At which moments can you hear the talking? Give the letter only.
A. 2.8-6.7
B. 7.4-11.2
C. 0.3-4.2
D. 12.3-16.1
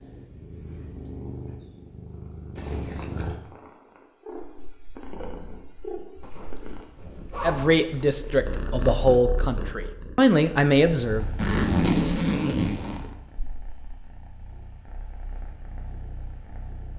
B.